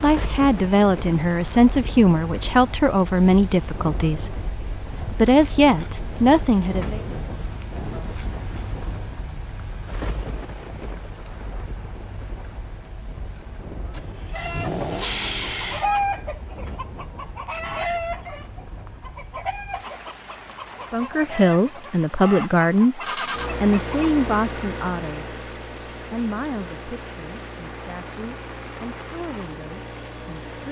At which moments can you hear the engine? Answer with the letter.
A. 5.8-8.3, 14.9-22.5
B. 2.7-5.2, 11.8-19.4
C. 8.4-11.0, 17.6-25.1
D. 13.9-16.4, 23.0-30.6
D.